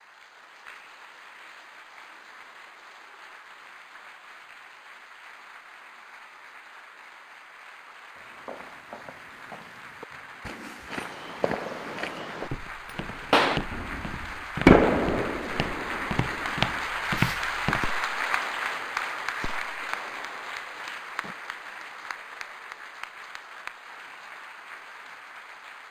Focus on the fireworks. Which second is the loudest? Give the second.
15 s.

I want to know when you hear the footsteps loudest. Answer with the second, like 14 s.
17 s.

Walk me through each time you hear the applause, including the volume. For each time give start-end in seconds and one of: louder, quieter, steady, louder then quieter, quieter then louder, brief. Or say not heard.
0.0-25.8 louder then quieter.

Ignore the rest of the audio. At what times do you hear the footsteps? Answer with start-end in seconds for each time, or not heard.
8.2-17.8.